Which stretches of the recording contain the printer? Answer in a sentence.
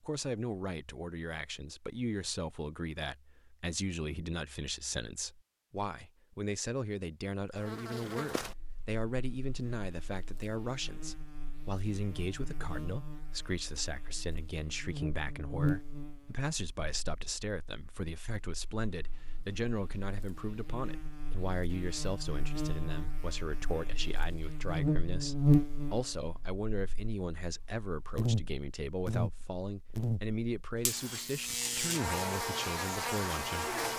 You can't hear the printer here.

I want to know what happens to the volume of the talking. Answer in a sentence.
The loudness of the talking stays about the same.